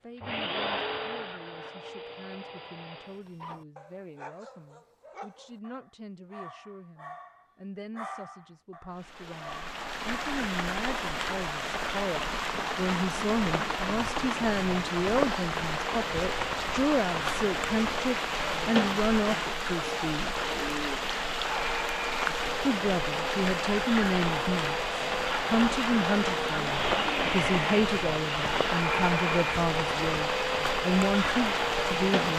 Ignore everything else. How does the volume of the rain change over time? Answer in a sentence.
The volume of the rain stays about the same.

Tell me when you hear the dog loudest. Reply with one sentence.
The volume of the dog peaks at 8 seconds.